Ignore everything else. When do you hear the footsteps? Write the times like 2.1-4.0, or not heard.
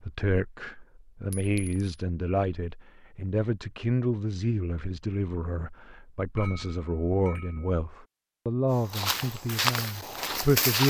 8.8-10.8.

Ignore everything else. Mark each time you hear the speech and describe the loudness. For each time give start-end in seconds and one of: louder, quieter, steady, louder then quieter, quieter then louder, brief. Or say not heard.
0.0-10.8 steady.